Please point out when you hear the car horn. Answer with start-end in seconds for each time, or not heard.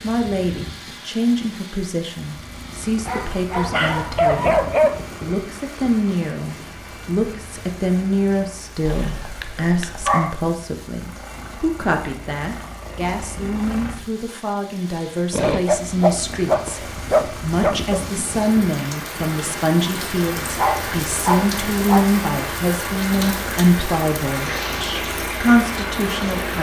not heard.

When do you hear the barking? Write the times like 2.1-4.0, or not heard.
3.0-5.0, 8.8-10.3, 15.3-18.0, 20.6-22.1.